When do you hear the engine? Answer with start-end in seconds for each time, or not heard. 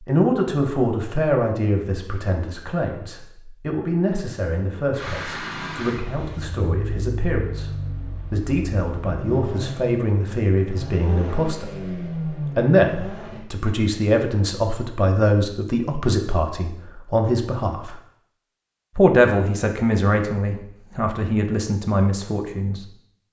4.9-13.4.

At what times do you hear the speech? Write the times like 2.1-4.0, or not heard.
0.0-18.0, 18.9-22.9.